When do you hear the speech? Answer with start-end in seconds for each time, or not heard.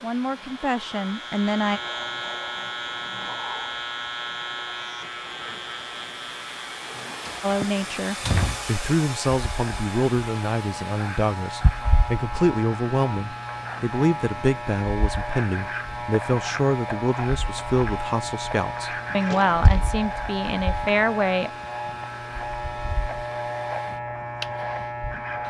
0.0-1.8, 7.4-21.5.